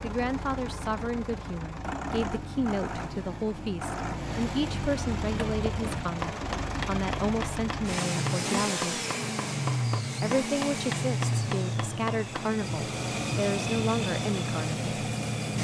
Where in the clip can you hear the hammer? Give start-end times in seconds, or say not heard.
5.2-12.6.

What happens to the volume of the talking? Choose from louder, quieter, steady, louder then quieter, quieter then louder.
steady.